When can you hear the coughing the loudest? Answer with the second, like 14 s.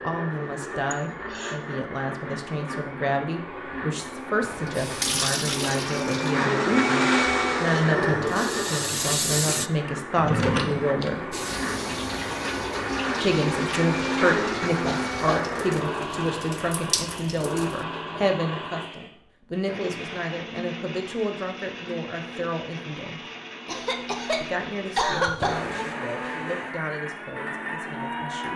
25 s.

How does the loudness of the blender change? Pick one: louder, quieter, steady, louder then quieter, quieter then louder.
louder then quieter.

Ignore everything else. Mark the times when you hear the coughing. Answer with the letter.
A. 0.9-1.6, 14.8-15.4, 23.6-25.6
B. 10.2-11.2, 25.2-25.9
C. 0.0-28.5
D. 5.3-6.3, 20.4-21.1
A.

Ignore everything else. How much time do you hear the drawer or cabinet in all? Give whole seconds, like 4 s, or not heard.
2 s.